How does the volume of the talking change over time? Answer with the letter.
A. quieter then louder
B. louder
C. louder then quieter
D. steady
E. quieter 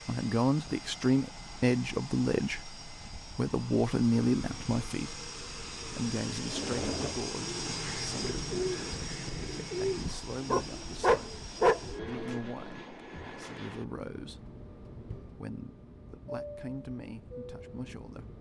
E.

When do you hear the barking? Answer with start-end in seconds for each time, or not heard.
10.0-11.8.